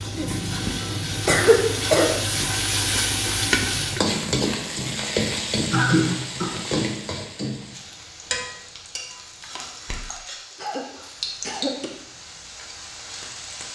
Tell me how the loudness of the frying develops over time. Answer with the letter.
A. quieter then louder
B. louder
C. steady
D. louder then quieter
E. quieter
E.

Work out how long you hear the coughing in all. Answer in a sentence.
The coughing can be heard for 5 seconds in total.